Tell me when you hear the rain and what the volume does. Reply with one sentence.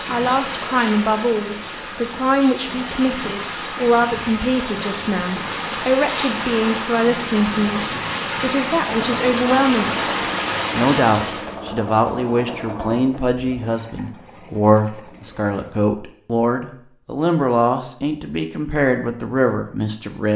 You can hear the rain from 0.0 to 11.6 s, getting louder.